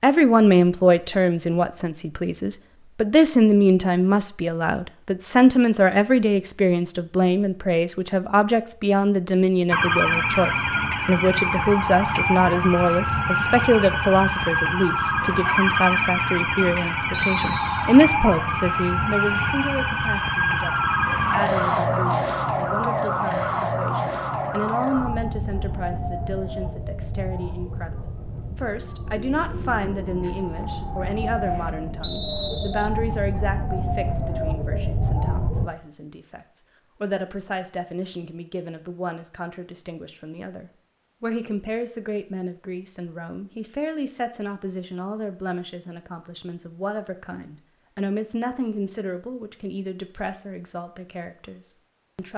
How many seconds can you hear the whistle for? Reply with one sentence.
You can hear the whistle for 2 seconds altogether.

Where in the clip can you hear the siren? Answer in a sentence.
You can hear the siren from 9.7 to 35.7 s.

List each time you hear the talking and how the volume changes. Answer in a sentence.
The talking can be heard from 0.0 to 52.3 s, getting quieter.